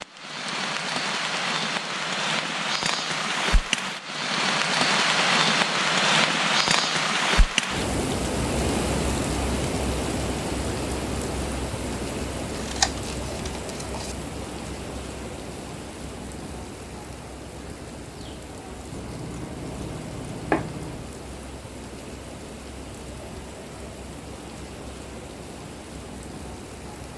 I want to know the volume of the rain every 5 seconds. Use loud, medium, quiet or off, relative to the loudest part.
loud, loud, medium, quiet, quiet, quiet.